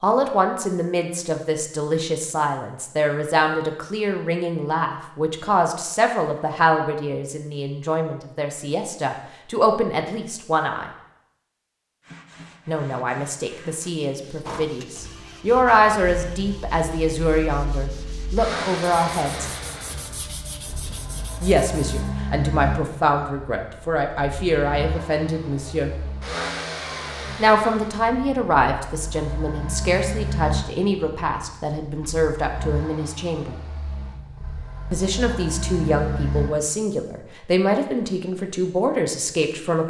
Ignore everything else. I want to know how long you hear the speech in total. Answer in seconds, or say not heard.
33 s.